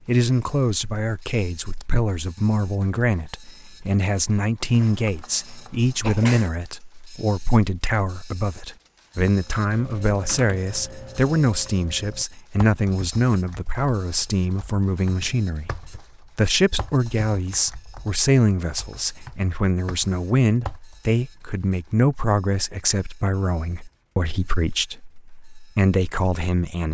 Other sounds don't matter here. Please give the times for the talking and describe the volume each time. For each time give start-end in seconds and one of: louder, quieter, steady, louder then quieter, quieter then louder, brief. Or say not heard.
0.1-26.8 steady.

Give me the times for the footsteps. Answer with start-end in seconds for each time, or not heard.
not heard.